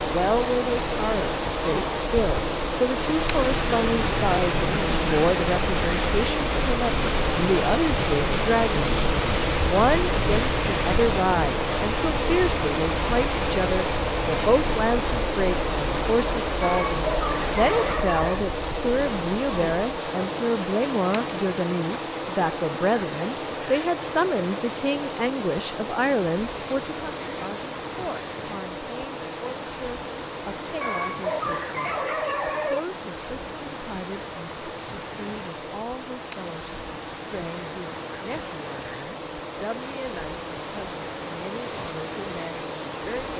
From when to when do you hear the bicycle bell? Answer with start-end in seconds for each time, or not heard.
not heard.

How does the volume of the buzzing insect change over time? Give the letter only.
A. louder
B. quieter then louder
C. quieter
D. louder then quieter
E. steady
C.